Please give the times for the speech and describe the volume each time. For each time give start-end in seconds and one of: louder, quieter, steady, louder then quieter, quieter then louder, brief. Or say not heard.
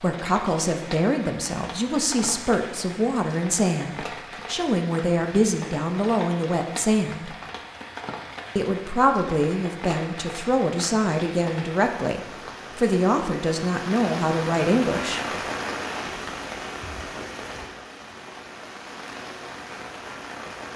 0.0-7.3 steady
8.6-15.2 steady.